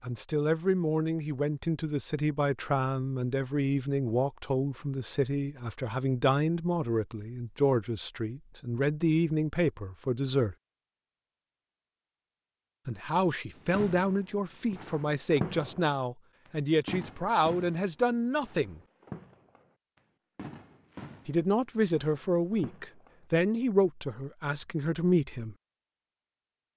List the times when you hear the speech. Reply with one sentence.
You can hear the speech from 0.0 to 10.6 s, from 12.8 to 18.8 s and from 21.2 to 25.6 s.